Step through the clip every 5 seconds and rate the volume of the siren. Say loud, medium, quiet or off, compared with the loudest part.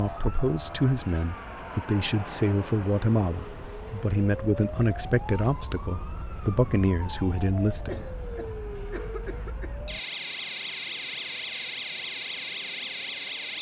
medium, medium, loud.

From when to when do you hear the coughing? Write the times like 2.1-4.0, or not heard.
7.8-9.8.